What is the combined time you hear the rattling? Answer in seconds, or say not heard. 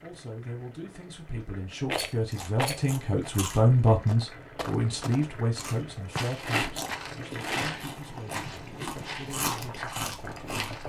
3 s.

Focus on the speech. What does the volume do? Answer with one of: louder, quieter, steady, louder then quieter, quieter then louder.
louder then quieter.